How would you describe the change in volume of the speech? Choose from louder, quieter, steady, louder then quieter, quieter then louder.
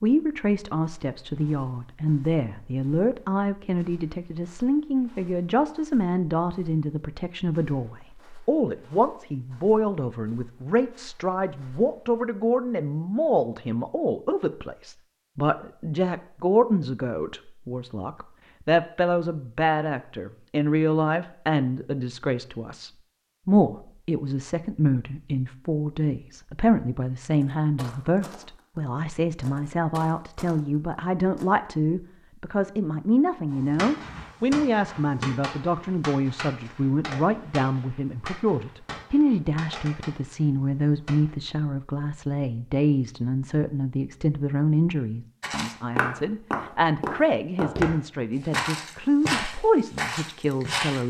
steady.